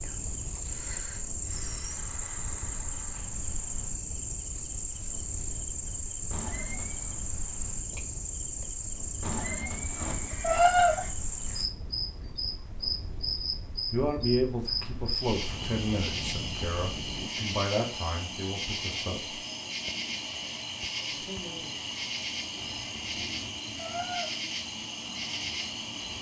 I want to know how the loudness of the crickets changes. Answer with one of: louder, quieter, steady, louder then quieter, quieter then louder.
steady.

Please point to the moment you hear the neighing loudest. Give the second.
11 s.